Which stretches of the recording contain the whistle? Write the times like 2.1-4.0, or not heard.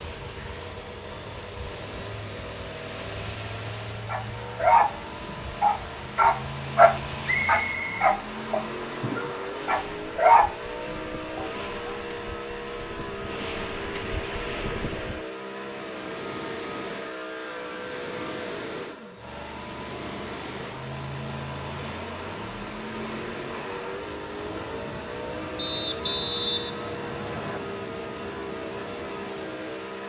7.2-8.0, 25.6-27.6.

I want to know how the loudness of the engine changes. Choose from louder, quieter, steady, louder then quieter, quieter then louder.
steady.